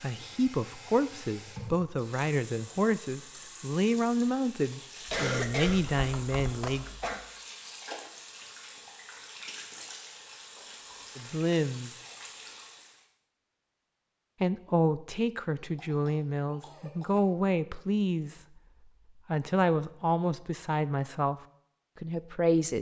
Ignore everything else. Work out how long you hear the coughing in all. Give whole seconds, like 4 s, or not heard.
4 s.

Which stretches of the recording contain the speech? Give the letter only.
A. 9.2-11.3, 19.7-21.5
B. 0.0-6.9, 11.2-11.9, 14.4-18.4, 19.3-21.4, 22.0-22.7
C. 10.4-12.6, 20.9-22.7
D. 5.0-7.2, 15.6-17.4
B.